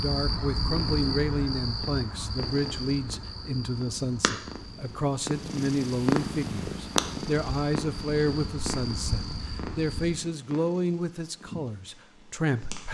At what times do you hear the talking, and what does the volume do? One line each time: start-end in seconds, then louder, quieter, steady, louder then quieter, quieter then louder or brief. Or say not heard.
0.0-12.8 steady.